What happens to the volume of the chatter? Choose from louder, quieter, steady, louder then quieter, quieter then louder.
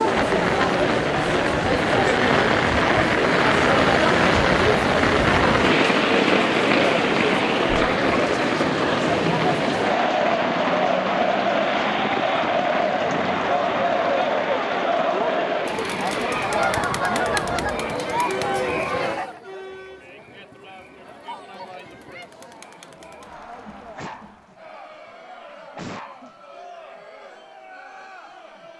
quieter.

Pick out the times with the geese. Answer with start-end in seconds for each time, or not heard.
16.4-17.9.